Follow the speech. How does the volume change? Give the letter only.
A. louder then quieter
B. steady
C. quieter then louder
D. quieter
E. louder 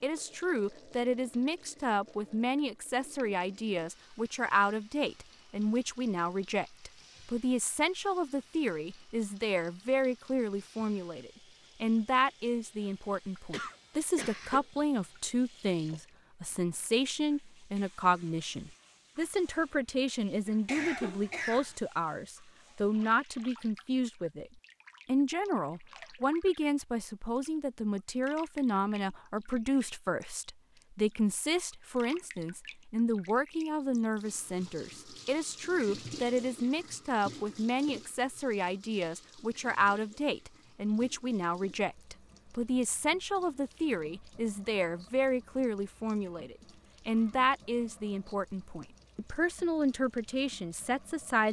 B.